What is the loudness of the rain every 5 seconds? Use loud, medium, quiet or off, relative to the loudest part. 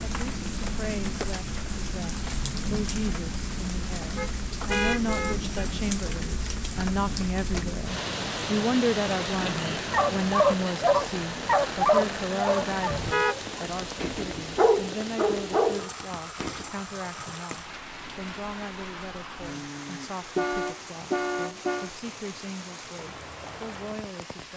loud, loud, loud, medium, medium.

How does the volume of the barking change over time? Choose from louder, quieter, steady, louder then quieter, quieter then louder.
quieter then louder.